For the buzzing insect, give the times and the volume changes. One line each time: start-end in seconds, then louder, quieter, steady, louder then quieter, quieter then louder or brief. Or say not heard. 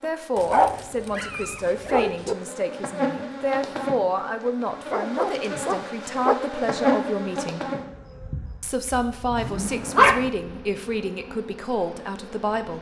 0.0-12.7 louder then quieter.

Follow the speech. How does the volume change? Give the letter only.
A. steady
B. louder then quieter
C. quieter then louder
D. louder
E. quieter
A.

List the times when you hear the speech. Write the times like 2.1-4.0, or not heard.
0.0-7.7, 8.6-12.7.